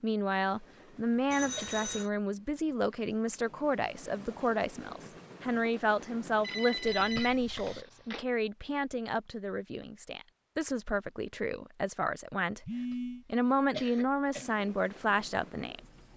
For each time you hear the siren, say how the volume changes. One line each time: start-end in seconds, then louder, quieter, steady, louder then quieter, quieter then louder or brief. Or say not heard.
not heard.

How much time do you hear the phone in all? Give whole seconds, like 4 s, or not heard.
3 s.